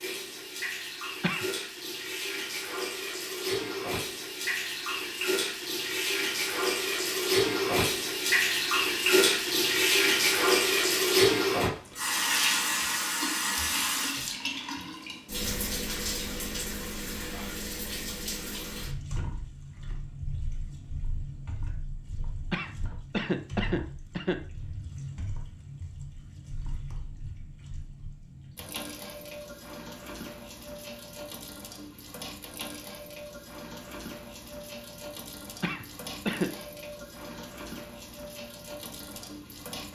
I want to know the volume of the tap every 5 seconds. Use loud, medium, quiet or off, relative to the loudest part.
medium, loud, loud, medium, quiet, quiet, quiet, quiet.